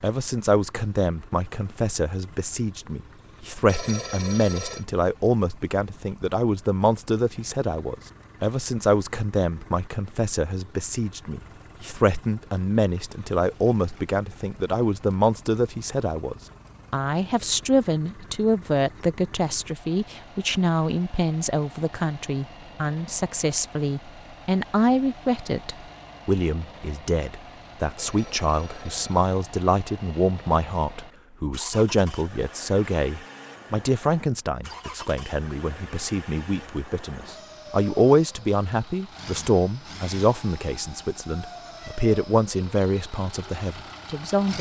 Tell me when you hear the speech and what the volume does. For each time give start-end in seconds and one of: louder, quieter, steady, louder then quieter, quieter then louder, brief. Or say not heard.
0.0-44.5 steady.